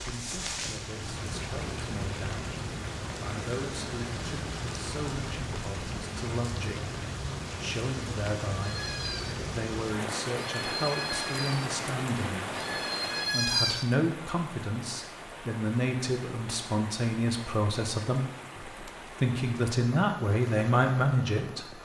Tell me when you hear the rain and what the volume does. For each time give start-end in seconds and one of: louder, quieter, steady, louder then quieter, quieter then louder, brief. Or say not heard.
0.0-21.7 quieter.